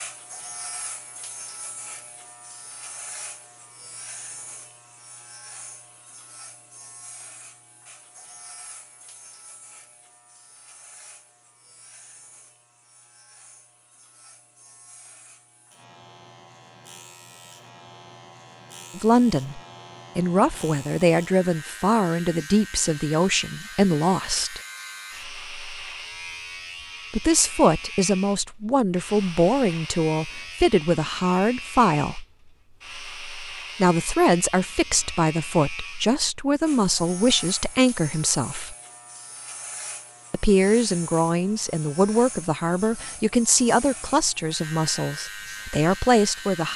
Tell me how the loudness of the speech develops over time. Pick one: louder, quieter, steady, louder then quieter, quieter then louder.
steady.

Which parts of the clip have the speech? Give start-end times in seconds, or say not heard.
18.9-24.6, 27.1-32.2, 33.8-38.8, 40.3-46.7.